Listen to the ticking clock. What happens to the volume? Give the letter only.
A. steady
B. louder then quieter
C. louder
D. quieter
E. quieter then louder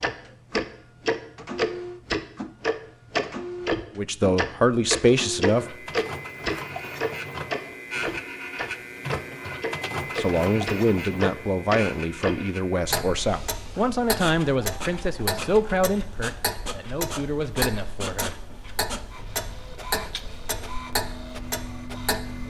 D.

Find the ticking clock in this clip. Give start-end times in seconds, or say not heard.
0.0-22.4.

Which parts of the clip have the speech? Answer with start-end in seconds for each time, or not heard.
4.0-5.8, 10.2-18.4.